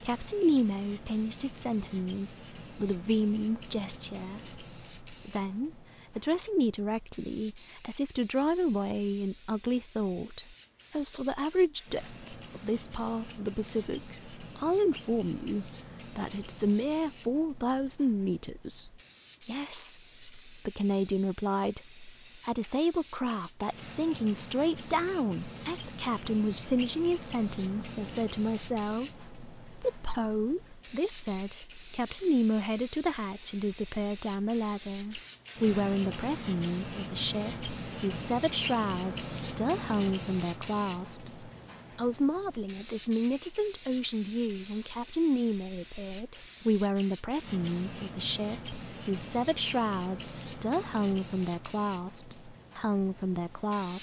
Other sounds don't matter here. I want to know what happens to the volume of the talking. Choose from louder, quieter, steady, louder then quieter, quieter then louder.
steady.